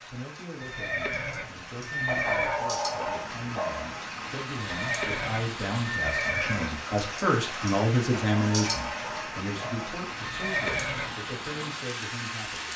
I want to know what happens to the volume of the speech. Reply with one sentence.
The volume of the speech goes up, then down.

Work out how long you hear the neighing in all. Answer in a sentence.
The neighing can be heard for 5 seconds in total.